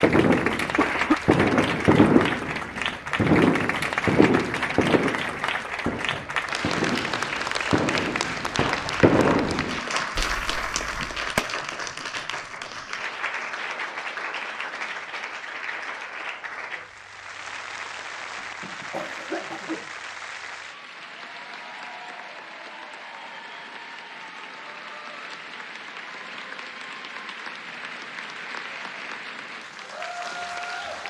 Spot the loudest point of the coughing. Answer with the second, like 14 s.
1 s.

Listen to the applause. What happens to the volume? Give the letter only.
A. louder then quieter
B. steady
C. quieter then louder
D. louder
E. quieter
E.